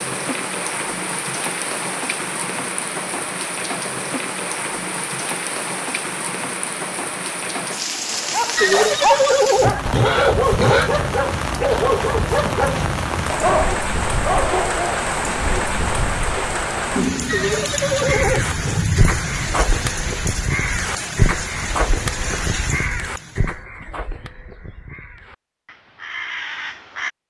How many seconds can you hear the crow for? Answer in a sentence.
The crow can be heard for 9 seconds in total.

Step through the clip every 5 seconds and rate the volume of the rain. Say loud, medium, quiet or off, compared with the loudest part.
loud, loud, loud, loud, medium, off.